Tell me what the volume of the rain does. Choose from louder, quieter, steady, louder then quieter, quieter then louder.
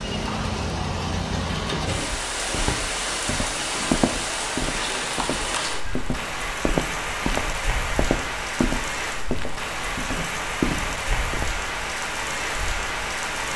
steady.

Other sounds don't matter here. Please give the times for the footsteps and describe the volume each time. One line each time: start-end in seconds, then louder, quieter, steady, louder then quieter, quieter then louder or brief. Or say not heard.
1.9-11.5 steady.